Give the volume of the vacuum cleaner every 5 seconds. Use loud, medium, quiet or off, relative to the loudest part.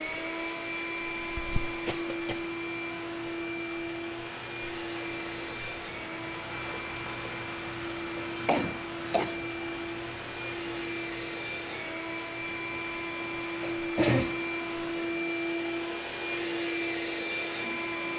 loud, medium, loud, loud.